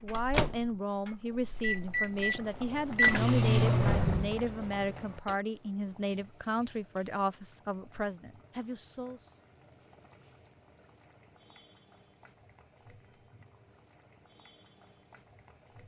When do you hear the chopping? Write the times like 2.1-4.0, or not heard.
not heard.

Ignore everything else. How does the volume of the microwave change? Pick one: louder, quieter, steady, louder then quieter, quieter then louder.
louder then quieter.